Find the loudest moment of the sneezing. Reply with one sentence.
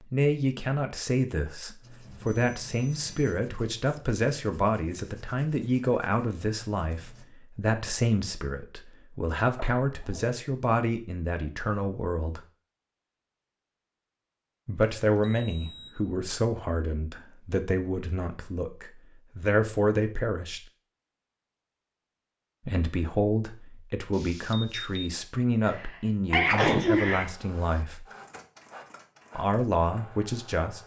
The volume of the sneezing peaks at 27 seconds.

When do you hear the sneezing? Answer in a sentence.
You can hear the sneezing from 9.6 to 10.3 s and from 25.6 to 27.2 s.